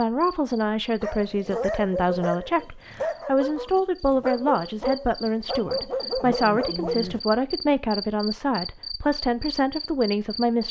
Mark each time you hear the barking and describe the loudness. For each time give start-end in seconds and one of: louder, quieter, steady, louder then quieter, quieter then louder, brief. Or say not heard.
1.0-7.2 steady.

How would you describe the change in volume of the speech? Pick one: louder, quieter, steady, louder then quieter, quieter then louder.
steady.